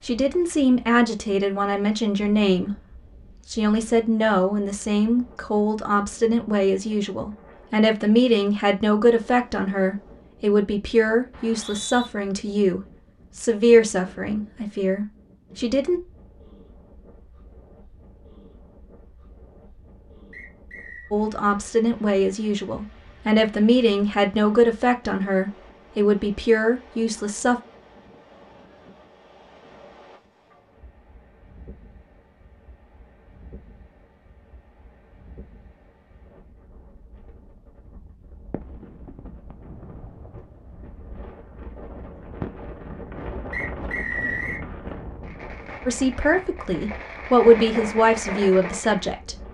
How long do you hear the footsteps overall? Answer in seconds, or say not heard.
not heard.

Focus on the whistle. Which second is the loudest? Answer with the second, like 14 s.
44 s.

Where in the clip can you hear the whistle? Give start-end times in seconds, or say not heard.
11.3-12.1, 20.3-21.1, 43.5-44.6.